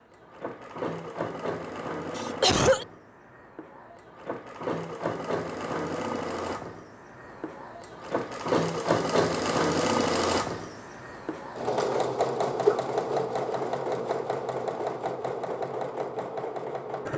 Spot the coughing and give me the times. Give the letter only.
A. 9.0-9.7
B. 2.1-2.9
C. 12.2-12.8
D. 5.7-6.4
B.